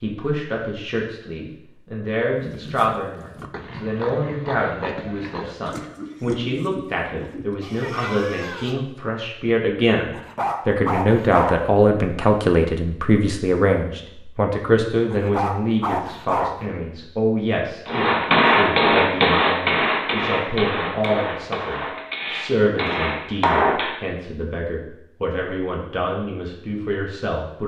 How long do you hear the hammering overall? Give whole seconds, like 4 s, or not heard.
6 s.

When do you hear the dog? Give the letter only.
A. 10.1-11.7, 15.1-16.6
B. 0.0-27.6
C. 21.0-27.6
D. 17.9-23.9
A.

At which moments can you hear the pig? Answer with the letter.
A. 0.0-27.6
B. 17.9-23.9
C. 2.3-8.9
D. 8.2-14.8
C.